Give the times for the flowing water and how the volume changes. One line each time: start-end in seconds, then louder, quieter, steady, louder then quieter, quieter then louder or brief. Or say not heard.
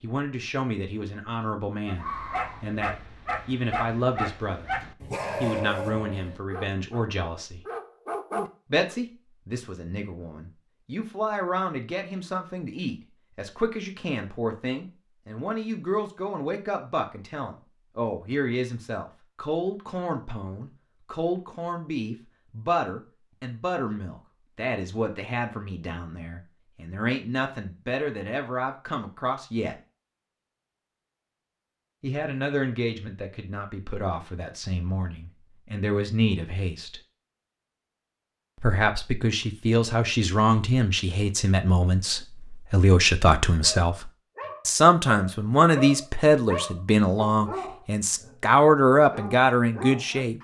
not heard.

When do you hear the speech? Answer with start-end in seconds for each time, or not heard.
0.0-4.8, 5.4-7.6, 8.7-29.8, 32.0-37.0, 38.6-50.3.